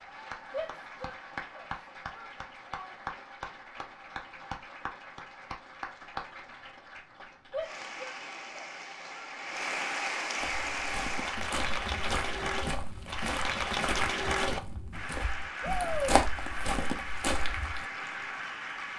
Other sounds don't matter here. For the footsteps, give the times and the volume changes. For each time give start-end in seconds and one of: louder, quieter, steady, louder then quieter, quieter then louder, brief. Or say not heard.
10.3-17.9 louder.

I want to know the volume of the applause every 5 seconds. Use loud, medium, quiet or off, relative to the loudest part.
medium, medium, loud, medium.